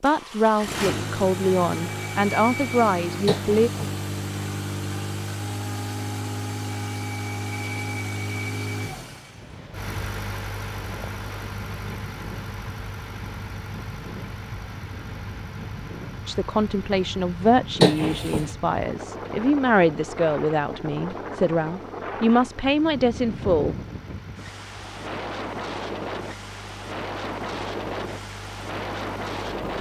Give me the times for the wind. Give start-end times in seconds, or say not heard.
9.2-29.7.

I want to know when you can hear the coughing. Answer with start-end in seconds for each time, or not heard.
3.2-4.0, 17.8-18.5.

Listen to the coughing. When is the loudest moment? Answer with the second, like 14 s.
18 s.